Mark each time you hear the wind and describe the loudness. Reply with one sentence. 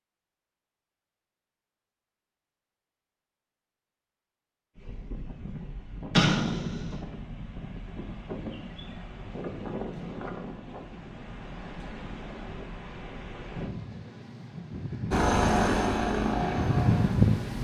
The wind can be heard from 4.8 to 17.6 s, getting louder.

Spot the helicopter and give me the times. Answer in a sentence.
The helicopter can be heard from 15.1 to 17.6 s.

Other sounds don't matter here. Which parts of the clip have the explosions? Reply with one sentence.
The explosions can be heard from 6.2 to 7.0 s.